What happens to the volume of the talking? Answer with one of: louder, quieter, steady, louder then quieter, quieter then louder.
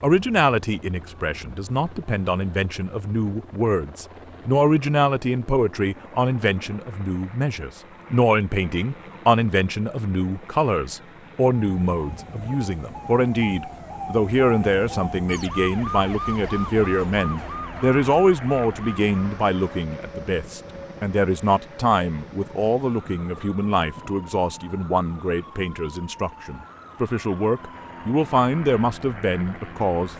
steady.